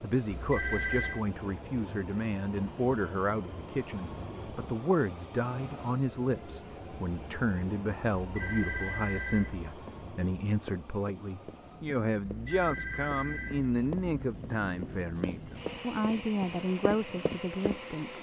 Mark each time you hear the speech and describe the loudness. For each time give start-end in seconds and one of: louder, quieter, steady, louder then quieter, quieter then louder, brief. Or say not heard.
0.0-18.1 steady.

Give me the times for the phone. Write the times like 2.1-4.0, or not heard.
0.3-1.2, 8.1-9.8, 12.2-14.2.